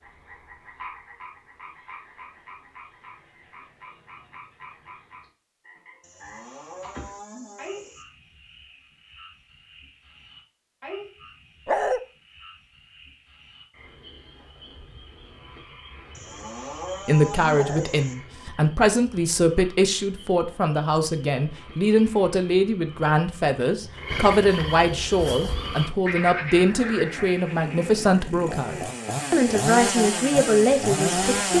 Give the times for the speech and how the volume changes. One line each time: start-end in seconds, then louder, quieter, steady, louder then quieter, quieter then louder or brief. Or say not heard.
17.1-31.5 steady.